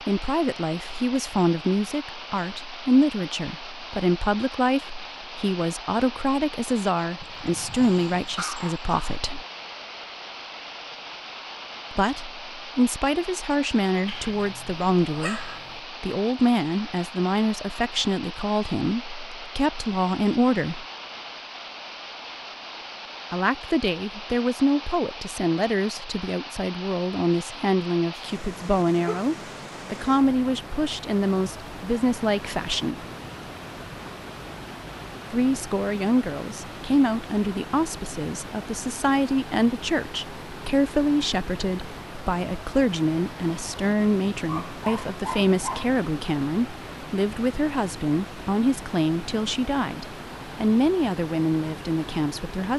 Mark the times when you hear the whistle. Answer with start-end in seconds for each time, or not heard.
not heard.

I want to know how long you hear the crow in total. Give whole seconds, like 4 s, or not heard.
not heard.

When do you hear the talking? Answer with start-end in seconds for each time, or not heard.
0.1-9.4, 11.9-20.9, 23.3-33.0, 35.3-52.7.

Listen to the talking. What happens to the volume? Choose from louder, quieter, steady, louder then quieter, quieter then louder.
steady.